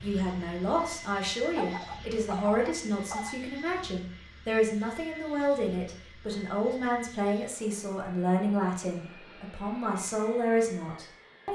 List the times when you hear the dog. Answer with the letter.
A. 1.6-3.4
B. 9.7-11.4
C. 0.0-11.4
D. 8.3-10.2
A.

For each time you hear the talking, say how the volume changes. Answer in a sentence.
You can hear the talking from 0.0 to 11.4 s, at a steady volume.